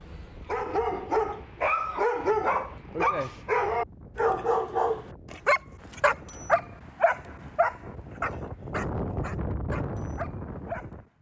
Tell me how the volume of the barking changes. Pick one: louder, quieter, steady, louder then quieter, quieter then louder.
quieter.